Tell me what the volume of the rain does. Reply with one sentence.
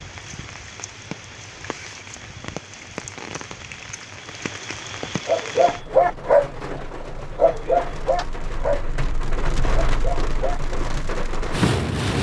The loudness of the rain goes up.